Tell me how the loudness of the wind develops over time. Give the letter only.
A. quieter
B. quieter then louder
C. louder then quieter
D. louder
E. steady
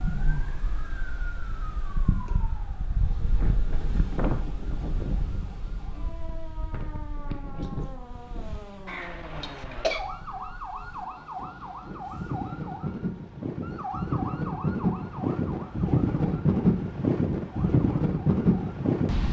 B.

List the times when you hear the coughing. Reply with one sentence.
You can hear the coughing from 8.8 to 10.0 s.